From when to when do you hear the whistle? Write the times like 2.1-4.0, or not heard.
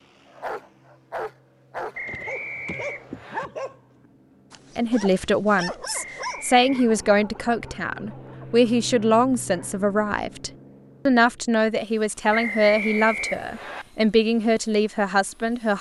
1.9-3.5, 5.9-6.8, 12.3-13.8.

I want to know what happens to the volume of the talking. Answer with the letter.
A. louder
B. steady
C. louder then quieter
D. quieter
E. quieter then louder
B.